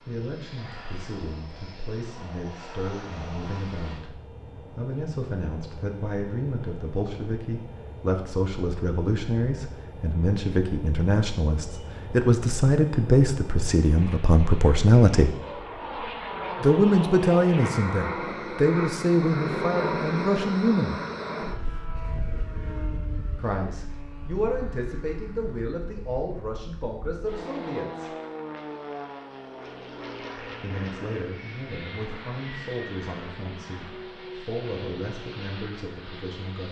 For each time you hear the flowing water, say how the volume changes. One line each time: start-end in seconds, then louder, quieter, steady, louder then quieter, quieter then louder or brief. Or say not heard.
not heard.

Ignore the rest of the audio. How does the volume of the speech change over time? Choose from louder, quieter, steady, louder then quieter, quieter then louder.
louder then quieter.